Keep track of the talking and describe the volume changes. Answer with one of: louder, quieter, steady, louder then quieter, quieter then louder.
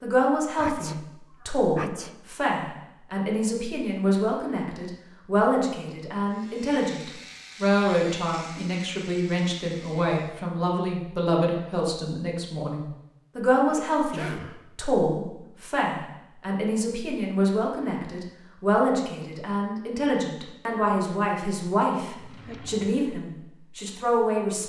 steady.